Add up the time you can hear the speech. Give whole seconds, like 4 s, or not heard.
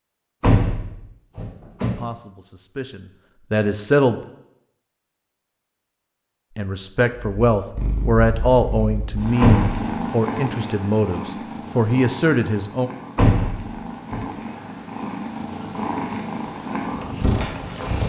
9 s.